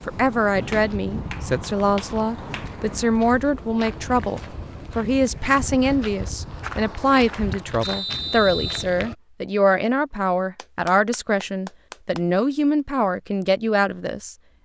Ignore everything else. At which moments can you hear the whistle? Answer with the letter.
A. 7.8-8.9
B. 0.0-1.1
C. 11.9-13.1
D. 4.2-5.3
A.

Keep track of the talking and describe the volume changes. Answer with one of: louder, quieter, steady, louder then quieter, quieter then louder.
steady.